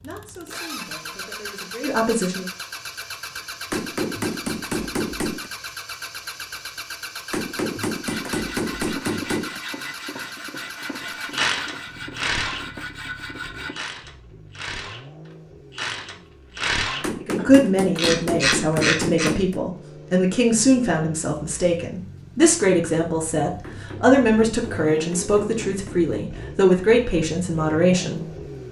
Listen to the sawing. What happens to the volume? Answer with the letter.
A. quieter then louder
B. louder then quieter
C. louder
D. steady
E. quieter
D.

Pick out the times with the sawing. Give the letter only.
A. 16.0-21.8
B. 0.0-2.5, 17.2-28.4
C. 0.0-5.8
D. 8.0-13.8
D.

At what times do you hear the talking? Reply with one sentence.
The talking can be heard from 0.0 to 2.5 s and from 17.2 to 28.4 s.